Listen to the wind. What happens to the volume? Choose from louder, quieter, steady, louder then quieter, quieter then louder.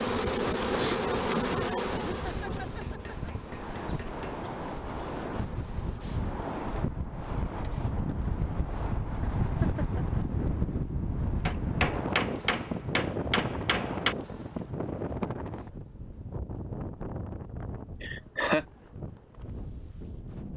louder then quieter.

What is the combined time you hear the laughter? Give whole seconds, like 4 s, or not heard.
3 s.